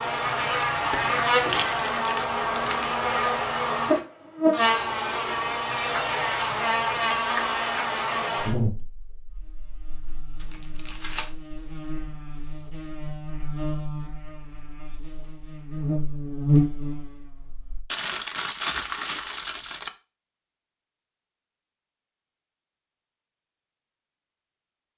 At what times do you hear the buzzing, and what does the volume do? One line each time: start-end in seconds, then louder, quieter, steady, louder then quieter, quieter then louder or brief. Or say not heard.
0.0-17.9 quieter then louder.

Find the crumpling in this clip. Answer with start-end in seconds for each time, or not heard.
0.4-3.0, 10.3-11.3, 17.9-19.9.